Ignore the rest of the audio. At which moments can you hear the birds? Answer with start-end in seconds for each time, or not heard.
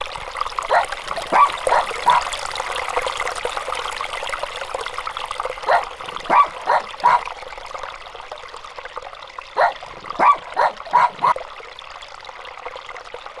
not heard.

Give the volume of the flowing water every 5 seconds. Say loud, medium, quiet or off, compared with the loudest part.
loud, medium, medium.